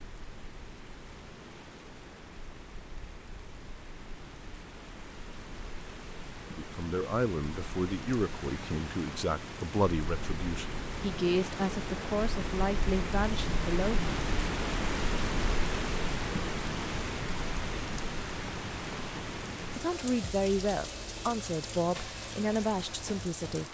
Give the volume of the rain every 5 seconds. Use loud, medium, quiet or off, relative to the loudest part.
quiet, medium, loud, loud, medium.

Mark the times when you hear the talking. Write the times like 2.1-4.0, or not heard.
6.5-14.2, 19.8-23.6.